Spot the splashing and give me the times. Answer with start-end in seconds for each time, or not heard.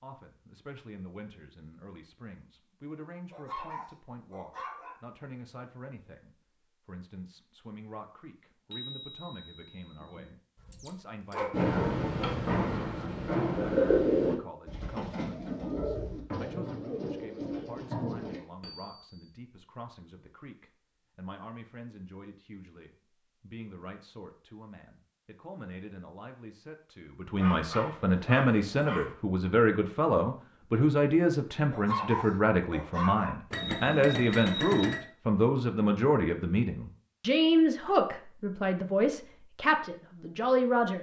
not heard.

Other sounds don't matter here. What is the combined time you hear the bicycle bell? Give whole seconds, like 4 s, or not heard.
4 s.